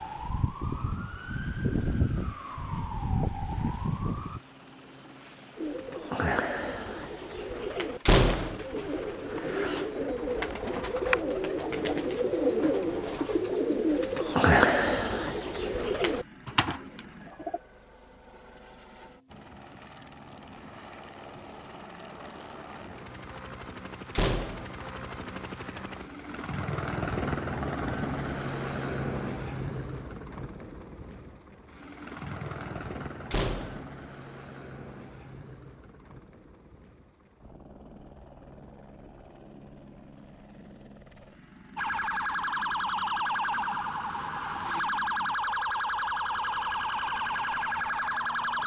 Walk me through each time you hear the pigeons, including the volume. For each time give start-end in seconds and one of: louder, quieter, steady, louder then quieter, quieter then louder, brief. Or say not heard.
5.5-17.6 louder then quieter.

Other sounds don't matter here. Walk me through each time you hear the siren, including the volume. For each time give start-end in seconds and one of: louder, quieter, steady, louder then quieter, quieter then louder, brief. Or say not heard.
0.0-4.4 steady
41.8-48.6 steady.